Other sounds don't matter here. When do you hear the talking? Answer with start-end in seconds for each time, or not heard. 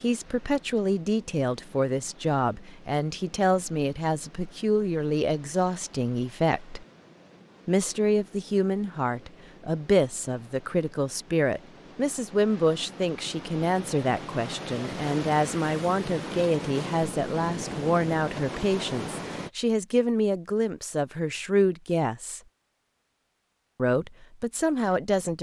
0.0-6.8, 7.7-22.4, 23.8-25.3.